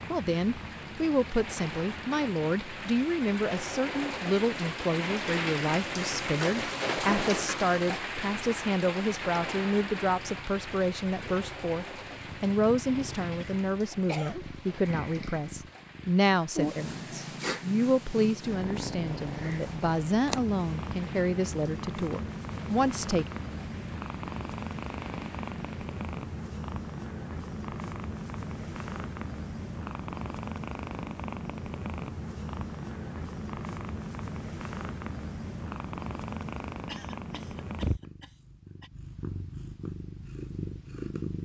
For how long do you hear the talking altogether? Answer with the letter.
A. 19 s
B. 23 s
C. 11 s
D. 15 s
B.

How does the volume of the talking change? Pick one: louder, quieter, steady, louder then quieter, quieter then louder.
steady.